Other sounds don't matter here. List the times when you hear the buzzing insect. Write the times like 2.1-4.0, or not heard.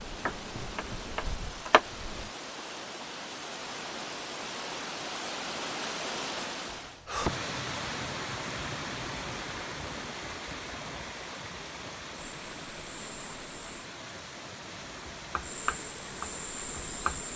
0.0-2.3, 12.3-13.8, 15.4-17.3.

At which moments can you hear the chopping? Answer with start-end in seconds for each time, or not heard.
0.2-1.8, 14.8-17.3.